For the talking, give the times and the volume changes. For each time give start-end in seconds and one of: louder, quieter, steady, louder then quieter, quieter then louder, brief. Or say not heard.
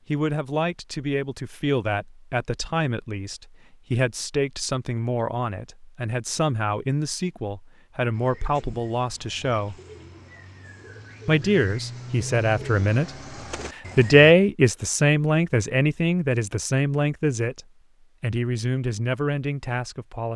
0.1-9.8 steady
11.2-13.1 brief
13.9-20.3 quieter.